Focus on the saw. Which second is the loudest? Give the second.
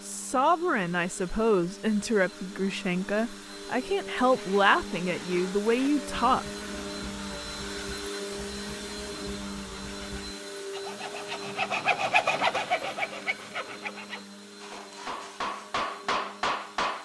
12 s.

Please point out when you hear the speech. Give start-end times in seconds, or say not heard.
0.0-6.5.